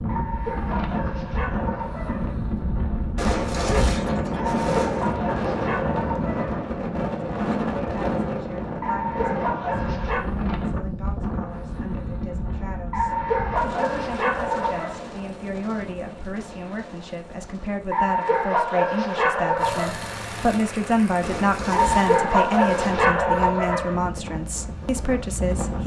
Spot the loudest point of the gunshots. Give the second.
4 s.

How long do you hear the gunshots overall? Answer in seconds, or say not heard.
4 s.